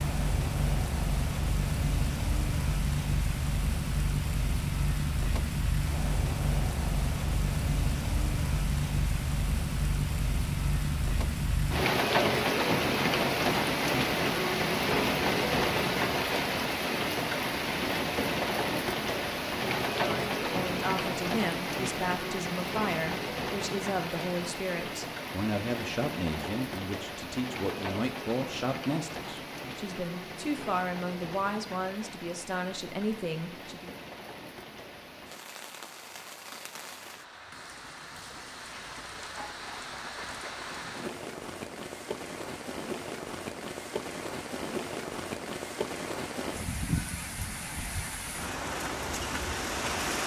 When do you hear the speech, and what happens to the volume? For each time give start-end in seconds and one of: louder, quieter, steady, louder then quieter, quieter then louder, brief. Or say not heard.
20.0-33.9 steady.